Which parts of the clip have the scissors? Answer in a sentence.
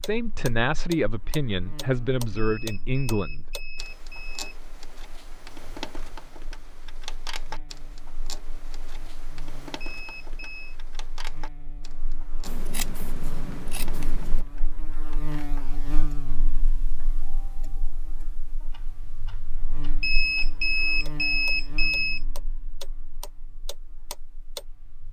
The scissors can be heard from 12.4 to 14.4 s.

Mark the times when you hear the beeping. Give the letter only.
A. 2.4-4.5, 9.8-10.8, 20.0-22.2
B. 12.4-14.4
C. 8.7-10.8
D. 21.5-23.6
A.